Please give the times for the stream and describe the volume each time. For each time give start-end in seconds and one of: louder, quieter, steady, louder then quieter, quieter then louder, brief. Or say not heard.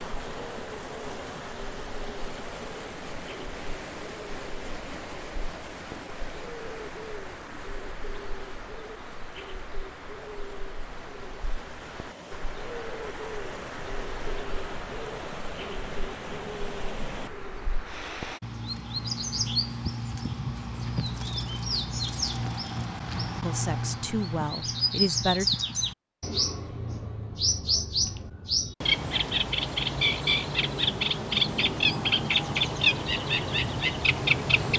0.0-18.4 quieter then louder.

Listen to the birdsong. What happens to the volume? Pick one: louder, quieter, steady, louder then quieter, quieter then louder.
louder.